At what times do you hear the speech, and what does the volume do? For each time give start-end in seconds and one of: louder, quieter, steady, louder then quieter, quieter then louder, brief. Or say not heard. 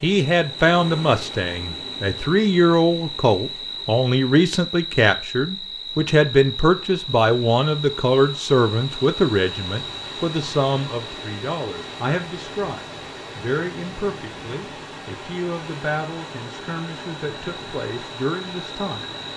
0.0-19.1 quieter.